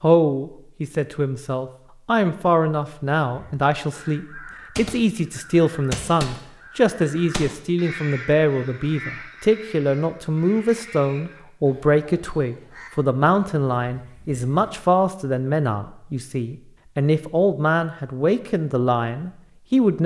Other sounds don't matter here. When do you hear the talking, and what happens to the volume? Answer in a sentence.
The talking can be heard from 0.0 to 20.0 s, at a steady volume.